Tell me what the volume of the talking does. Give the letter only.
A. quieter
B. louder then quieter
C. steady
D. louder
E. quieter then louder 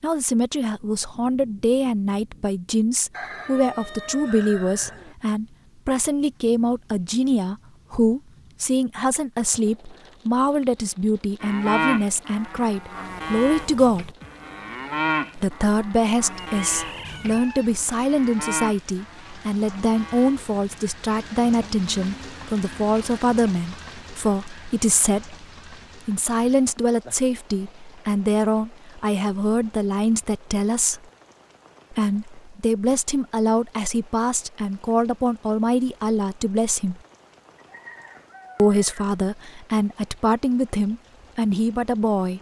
C.